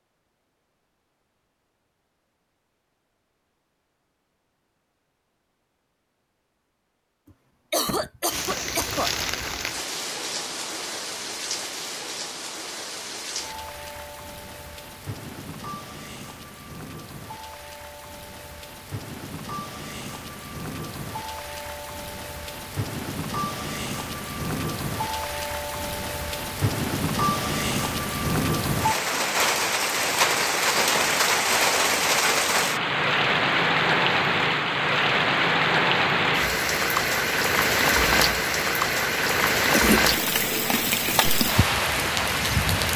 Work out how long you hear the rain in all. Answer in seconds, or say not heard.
35 s.